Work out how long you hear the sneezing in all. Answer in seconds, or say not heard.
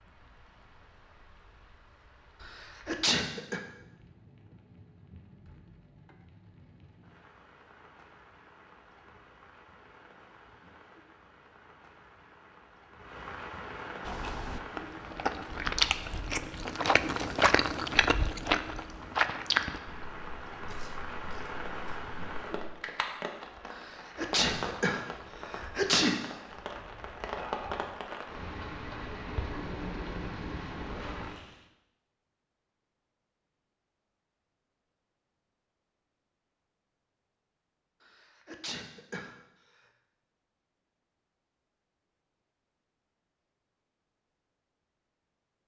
5 s.